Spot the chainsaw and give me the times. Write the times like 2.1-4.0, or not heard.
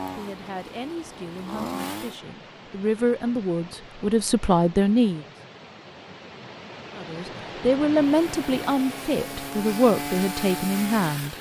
0.0-2.2, 8.1-11.3.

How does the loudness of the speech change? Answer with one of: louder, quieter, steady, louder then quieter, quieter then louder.
louder.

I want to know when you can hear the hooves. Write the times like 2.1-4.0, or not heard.
not heard.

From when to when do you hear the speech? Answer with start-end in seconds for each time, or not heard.
0.0-5.2, 7.0-11.3.